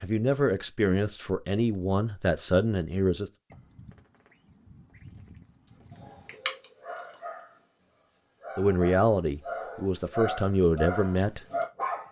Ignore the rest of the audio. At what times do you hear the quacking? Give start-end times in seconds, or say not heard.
3.5-6.5.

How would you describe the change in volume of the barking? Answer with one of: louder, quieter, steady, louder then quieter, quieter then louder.
quieter then louder.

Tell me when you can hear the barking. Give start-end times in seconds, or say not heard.
6.0-12.0.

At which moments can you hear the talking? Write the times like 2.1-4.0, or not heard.
0.0-3.3, 8.6-11.4.